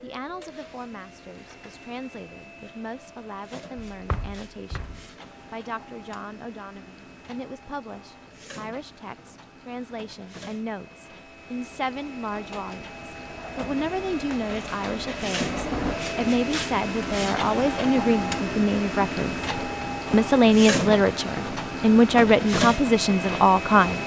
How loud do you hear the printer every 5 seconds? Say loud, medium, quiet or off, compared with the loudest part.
quiet, quiet, medium, loud, loud.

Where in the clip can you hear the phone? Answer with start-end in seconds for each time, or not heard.
3.8-5.0.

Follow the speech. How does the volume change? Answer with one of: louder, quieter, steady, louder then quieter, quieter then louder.
louder.